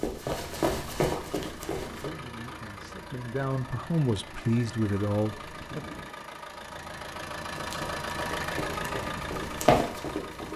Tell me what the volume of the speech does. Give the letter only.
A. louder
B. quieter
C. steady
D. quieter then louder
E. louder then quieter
A.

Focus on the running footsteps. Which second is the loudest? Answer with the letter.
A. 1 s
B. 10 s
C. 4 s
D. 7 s
B.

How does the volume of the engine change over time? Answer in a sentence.
The loudness of the engine goes up.